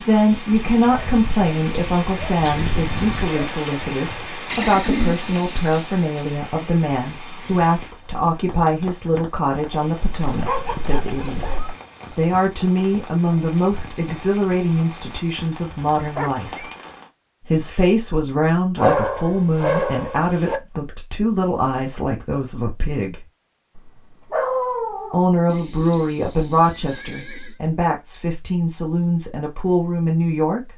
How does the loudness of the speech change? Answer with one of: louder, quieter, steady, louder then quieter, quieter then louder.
steady.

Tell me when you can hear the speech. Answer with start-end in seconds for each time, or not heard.
0.0-11.5, 12.2-16.6, 17.5-23.2, 25.1-30.7.